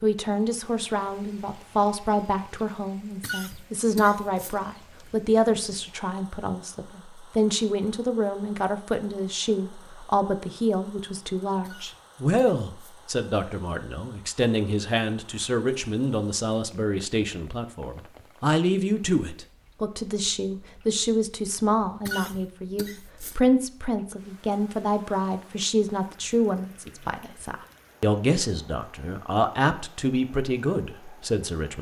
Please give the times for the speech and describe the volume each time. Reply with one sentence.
The speech can be heard from 0.0 to 31.7 s, at a steady volume.